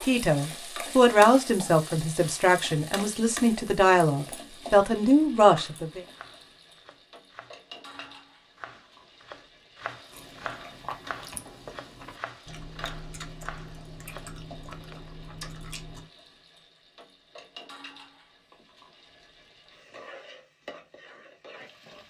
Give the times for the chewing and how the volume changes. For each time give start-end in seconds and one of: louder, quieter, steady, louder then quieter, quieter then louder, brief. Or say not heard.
10.1-16.1 steady.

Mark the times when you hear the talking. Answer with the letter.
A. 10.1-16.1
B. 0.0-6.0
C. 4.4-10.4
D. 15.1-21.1
B.